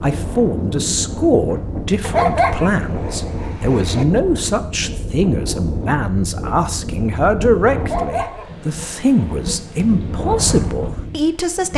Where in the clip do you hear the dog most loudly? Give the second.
2 s.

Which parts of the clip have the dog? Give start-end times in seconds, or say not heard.
2.0-4.0, 7.8-9.6.